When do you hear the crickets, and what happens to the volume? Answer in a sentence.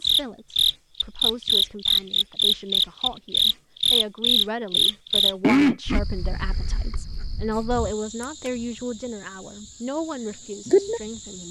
You can hear the crickets from 0.0 to 11.4 s, getting quieter then louder.